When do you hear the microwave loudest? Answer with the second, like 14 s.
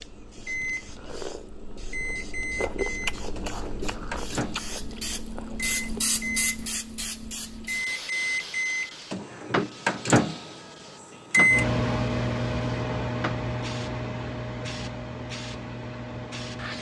12 s.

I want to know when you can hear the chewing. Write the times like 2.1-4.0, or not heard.
0.0-6.0.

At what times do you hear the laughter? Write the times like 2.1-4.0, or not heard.
not heard.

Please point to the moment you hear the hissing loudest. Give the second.
6 s.